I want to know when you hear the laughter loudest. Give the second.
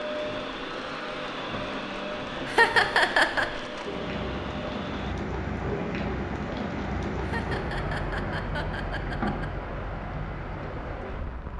3 s.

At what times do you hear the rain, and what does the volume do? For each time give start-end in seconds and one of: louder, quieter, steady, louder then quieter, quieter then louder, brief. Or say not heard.
0.0-11.5 louder.